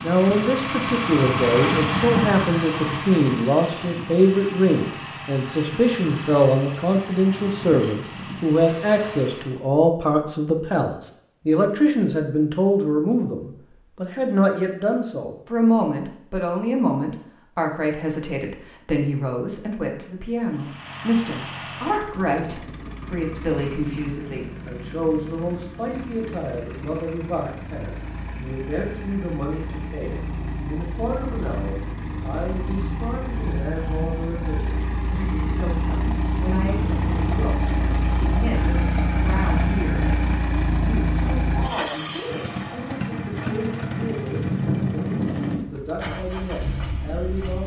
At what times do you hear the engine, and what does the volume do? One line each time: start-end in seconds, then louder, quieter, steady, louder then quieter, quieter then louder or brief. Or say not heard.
0.0-9.7 quieter
20.4-47.6 louder.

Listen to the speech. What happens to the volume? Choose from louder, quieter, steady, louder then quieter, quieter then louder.
quieter.